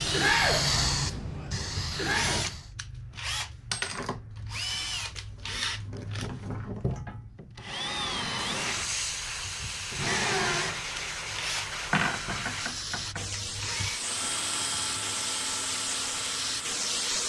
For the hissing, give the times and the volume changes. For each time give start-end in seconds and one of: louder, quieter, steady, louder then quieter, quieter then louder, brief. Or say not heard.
0.0-2.7 brief
8.3-17.2 steady.